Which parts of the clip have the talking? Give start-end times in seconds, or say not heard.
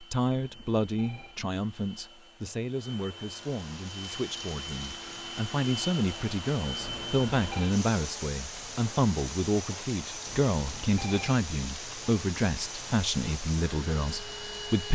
0.0-14.9.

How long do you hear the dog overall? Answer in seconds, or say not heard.
not heard.